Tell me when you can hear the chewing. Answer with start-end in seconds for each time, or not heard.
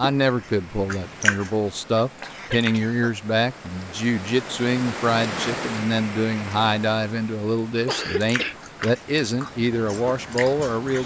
0.2-2.9, 7.8-11.0.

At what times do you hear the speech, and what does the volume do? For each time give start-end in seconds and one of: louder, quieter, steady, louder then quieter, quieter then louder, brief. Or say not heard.
0.0-11.0 steady.